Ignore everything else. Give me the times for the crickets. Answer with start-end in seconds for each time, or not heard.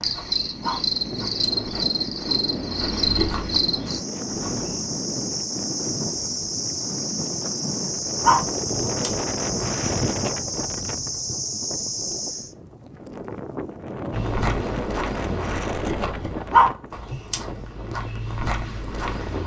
0.0-12.6.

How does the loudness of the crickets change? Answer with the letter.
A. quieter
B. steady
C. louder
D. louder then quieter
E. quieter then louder
B.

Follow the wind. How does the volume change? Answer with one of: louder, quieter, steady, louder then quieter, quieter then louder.
steady.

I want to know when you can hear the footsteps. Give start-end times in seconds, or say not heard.
0.0-4.9, 14.1-19.4.